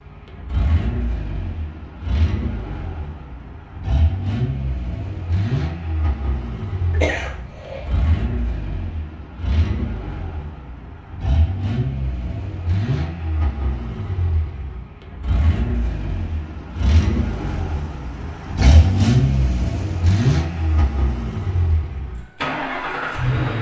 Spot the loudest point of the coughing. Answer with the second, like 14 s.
7 s.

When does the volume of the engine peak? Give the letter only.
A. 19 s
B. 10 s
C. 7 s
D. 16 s
A.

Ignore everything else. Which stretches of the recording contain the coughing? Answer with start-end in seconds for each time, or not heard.
6.9-8.0, 18.4-18.9.